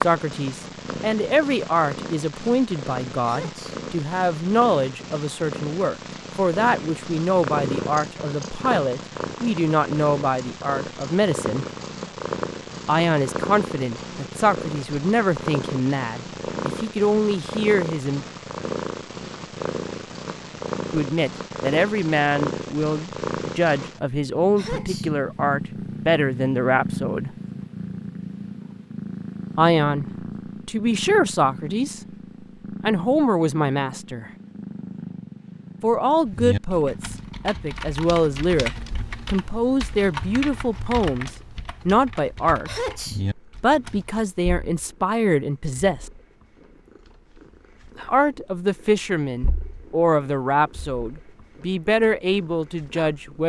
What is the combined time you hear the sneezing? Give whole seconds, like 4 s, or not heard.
2 s.